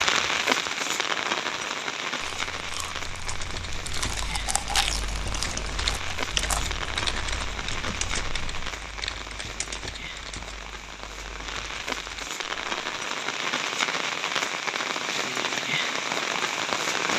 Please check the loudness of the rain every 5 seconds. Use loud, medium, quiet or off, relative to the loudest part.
loud, medium, loud, loud.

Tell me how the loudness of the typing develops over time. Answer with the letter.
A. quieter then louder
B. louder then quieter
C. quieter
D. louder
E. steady
B.